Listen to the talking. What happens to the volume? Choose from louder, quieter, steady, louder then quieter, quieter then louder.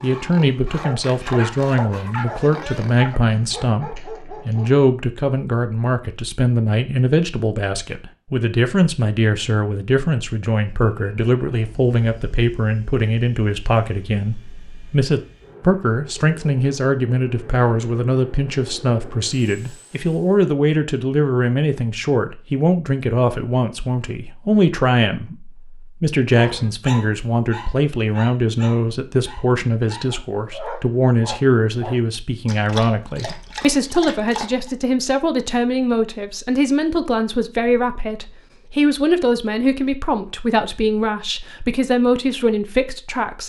steady.